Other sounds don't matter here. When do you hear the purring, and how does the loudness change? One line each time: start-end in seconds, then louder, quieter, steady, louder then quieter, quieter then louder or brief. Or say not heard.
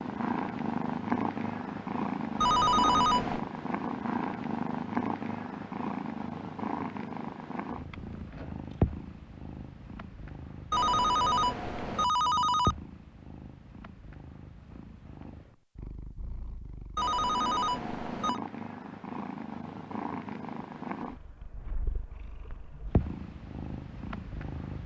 0.0-24.8 quieter.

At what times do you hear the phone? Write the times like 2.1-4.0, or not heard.
2.4-3.4, 10.7-12.8, 16.9-18.4.